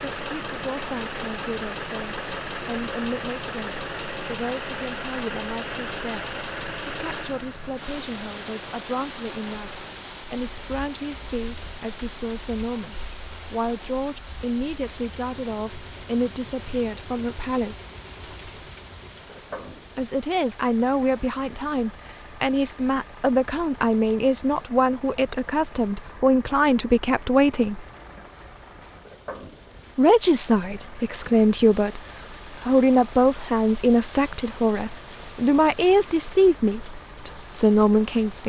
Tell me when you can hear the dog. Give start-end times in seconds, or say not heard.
not heard.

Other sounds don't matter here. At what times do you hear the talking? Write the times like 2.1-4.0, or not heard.
0.0-17.9, 19.9-27.9, 29.9-32.0, 32.6-38.4.